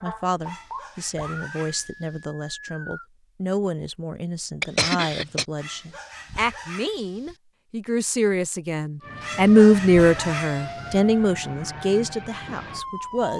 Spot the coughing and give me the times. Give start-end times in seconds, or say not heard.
4.6-5.5.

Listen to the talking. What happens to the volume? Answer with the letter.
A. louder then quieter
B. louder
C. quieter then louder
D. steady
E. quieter
A.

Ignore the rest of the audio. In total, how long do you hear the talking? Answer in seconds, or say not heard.
13 s.